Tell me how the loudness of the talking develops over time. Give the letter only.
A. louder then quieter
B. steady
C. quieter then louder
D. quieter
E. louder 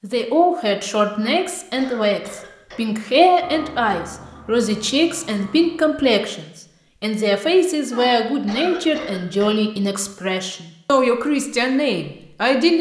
B.